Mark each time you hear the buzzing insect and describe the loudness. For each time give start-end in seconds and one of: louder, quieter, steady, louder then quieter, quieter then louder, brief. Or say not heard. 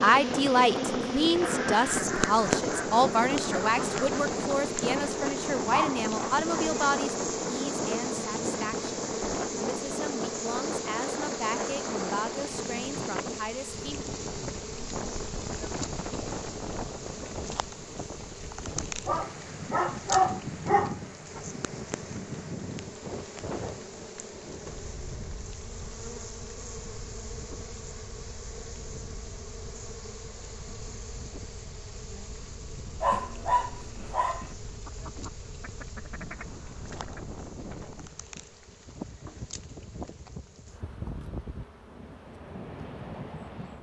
0.0-43.7 quieter.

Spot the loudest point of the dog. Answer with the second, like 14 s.
20 s.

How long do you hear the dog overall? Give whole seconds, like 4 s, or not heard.
5 s.